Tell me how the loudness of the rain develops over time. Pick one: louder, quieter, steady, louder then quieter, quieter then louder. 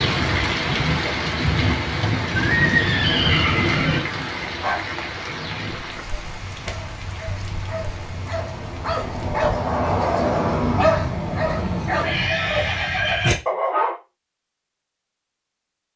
quieter.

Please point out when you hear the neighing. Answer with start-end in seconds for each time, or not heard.
2.3-4.0, 12.0-13.4.